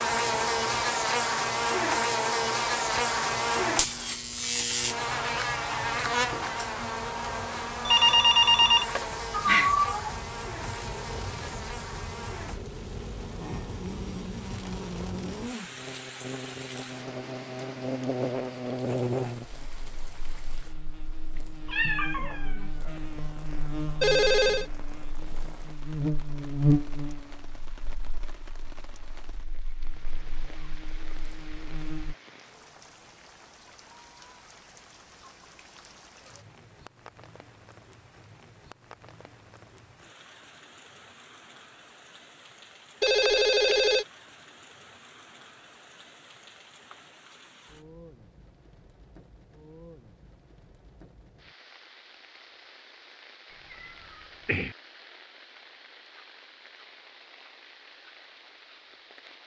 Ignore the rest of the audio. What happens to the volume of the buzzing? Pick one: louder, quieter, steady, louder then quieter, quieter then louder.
quieter then louder.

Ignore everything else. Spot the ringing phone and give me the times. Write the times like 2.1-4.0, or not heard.
7.8-9.8, 24.0-24.6, 43.0-44.0.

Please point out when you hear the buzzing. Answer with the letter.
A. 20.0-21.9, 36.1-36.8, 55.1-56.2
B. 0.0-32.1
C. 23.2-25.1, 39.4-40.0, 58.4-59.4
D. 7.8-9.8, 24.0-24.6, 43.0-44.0
B.